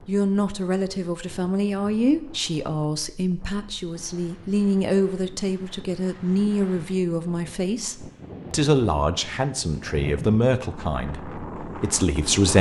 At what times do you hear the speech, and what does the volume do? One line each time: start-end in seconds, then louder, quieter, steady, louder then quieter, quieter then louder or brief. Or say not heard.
0.1-12.5 steady.